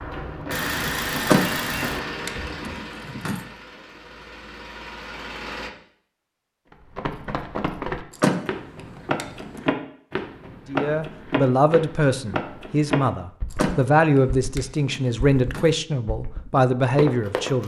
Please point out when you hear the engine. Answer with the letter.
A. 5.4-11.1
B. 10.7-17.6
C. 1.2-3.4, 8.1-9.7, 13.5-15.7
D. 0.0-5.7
D.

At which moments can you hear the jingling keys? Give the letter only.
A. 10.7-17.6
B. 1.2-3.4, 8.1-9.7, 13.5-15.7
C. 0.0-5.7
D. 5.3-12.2
B.